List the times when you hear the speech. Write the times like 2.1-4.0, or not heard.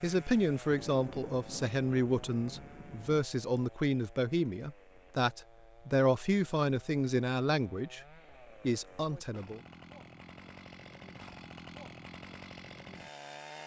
0.0-8.1, 8.7-9.6.